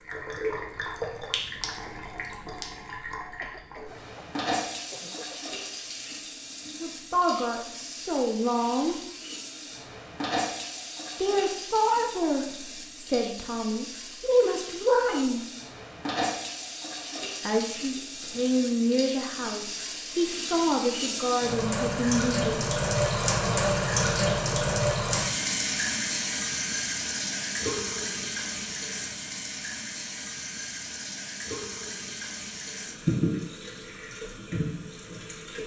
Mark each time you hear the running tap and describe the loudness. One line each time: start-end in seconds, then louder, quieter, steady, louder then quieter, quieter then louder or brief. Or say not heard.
0.0-35.6 louder then quieter.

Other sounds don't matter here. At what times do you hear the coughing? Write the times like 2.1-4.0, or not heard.
3.4-5.4.